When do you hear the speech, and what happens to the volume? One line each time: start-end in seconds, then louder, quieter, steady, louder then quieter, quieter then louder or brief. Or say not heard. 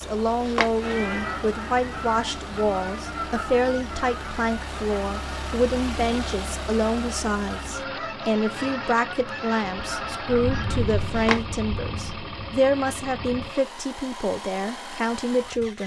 0.0-15.8 steady.